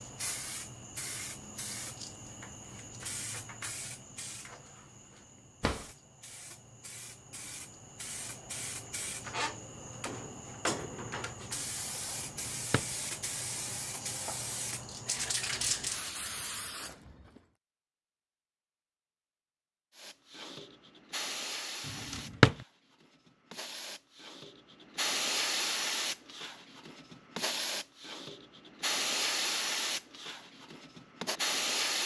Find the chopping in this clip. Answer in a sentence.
You can't hear the chopping here.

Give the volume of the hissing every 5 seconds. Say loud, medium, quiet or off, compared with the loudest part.
medium, medium, medium, loud, medium, loud, loud.